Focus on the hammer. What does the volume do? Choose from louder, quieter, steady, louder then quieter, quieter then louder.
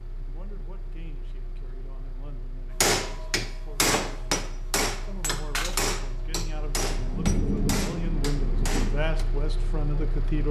quieter.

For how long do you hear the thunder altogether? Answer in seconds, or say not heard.
2 s.